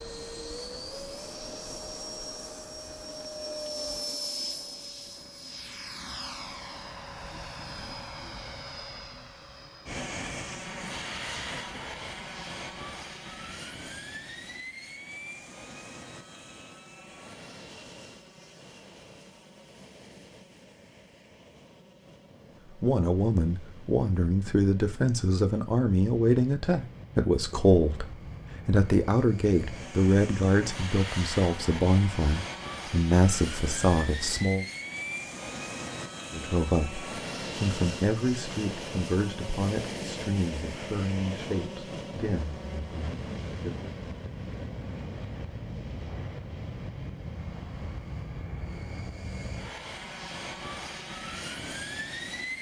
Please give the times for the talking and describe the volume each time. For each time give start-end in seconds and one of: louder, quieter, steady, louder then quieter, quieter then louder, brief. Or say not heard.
22.8-34.6 steady
36.3-43.9 quieter.